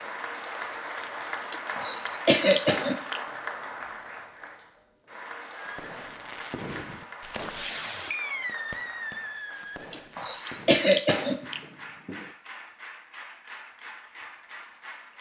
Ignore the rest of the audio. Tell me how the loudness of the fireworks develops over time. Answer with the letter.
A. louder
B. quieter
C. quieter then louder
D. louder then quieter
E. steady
D.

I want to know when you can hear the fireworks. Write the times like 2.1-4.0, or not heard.
5.5-12.3.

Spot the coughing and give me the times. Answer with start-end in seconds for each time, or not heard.
1.5-3.2, 9.9-11.6.